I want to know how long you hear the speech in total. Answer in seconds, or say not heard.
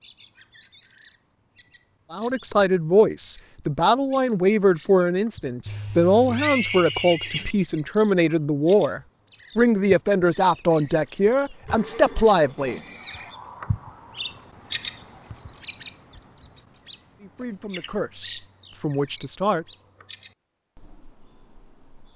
13 s.